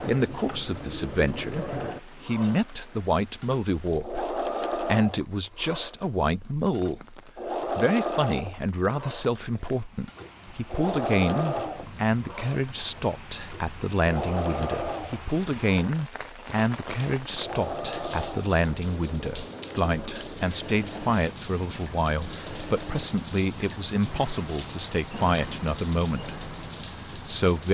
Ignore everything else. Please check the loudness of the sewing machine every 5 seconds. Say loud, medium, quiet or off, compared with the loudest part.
loud, loud, loud, medium, medium, medium.